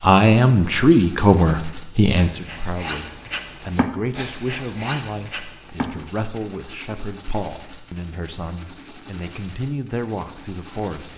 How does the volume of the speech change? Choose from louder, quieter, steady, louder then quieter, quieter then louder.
quieter.